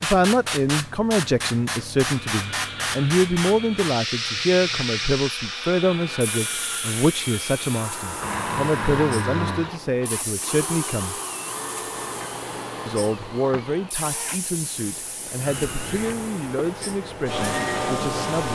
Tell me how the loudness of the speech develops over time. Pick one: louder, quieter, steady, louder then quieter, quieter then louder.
quieter.